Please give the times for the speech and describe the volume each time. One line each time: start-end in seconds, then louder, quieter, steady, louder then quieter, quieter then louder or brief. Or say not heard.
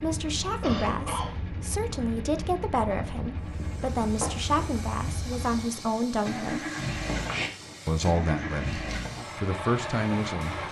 0.0-6.7 steady
7.8-10.6 brief.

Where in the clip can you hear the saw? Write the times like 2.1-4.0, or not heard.
not heard.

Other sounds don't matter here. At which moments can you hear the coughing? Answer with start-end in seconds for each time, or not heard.
0.6-1.4, 7.0-7.8.